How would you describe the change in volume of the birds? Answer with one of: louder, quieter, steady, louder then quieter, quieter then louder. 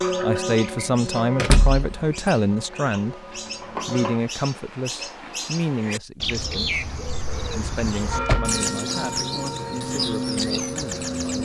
louder.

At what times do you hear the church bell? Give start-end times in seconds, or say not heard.
0.0-4.2, 8.1-11.4.